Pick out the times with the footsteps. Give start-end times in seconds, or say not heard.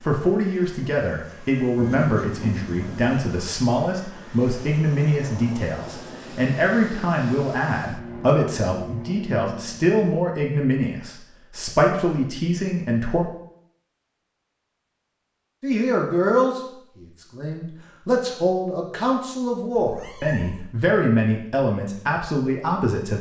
not heard.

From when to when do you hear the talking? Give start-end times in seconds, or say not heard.
0.0-13.2, 15.6-23.1.